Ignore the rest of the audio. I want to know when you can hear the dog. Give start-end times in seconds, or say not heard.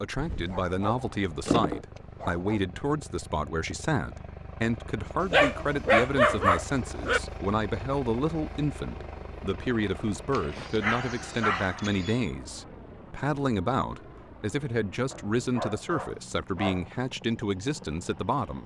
0.1-2.5, 5.2-7.2, 10.3-12.3, 15.1-16.9.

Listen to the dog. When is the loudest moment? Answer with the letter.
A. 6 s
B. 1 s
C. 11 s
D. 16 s
A.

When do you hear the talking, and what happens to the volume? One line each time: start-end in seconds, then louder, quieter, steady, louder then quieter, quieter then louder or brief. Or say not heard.
0.0-18.6 steady.